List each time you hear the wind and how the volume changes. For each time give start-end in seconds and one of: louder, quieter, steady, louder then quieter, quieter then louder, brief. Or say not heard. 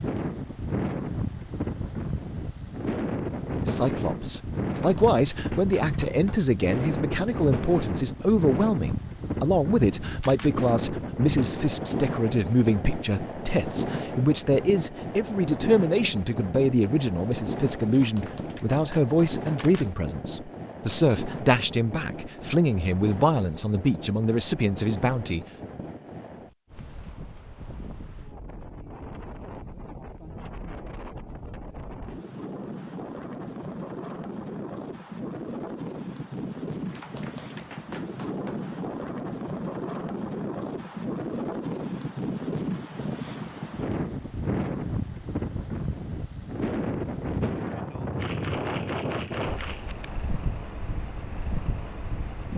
0.0-52.5 quieter then louder.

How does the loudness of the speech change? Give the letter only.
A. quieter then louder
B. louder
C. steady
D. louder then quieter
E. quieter
C.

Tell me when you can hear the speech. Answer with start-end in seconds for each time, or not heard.
3.5-25.4.